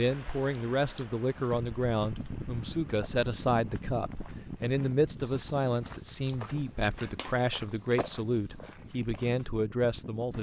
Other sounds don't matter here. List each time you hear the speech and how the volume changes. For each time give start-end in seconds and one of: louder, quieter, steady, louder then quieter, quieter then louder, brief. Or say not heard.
0.0-10.3 steady.